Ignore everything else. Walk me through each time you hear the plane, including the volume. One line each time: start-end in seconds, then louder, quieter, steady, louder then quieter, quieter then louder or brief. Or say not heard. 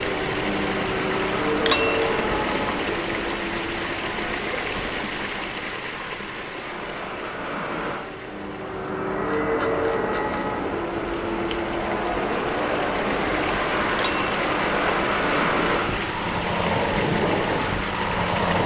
0.0-18.6 quieter then louder.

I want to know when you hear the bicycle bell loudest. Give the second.
2 s.